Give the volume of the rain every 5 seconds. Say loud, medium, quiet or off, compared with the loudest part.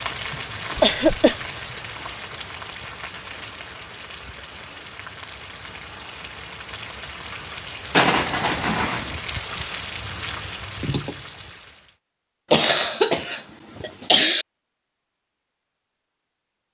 loud, loud, loud, off.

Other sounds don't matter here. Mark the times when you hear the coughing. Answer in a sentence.
The coughing can be heard from 0.3 to 1.4 s, from 7.9 to 9.2 s and from 12.5 to 14.4 s.